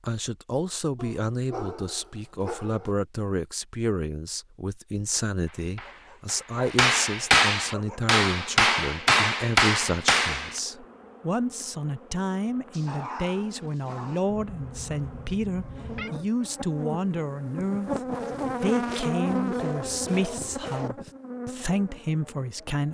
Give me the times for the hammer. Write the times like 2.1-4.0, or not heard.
5.5-10.6.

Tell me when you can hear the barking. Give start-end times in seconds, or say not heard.
0.9-3.0, 5.8-8.0, 12.7-14.2, 18.9-20.9.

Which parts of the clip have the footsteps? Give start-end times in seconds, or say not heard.
not heard.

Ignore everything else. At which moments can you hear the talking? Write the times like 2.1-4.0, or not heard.
0.0-18.0, 18.6-22.8.